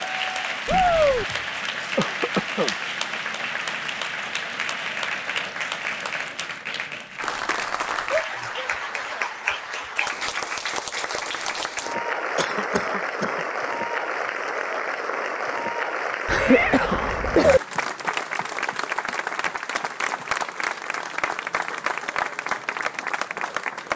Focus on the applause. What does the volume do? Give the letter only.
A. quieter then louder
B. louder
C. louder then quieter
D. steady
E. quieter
D.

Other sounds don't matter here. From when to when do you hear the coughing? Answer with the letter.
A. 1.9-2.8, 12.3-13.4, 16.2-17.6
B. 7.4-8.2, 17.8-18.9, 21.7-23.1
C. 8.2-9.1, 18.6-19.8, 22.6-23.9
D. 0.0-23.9
A.